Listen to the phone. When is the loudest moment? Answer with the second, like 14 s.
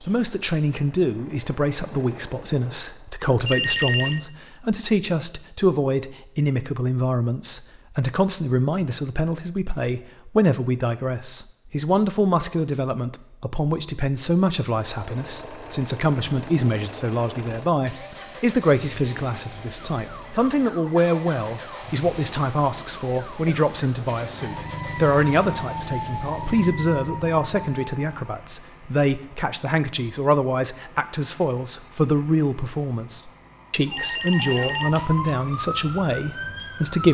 4 s.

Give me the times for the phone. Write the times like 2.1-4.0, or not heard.
3.5-4.2, 33.9-35.4.